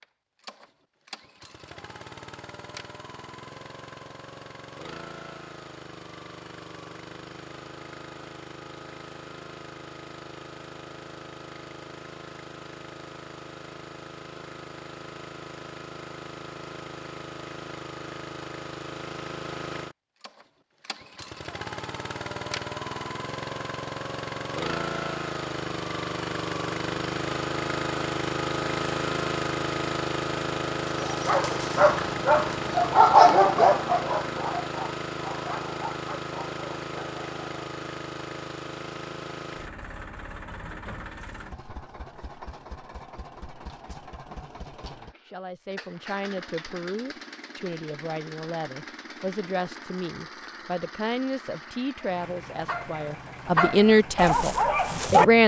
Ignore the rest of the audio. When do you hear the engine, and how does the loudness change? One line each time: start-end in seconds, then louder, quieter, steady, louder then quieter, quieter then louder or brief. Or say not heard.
0.0-55.4 louder then quieter.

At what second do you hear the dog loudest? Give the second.
33 s.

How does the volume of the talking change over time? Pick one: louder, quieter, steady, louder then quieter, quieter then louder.
louder.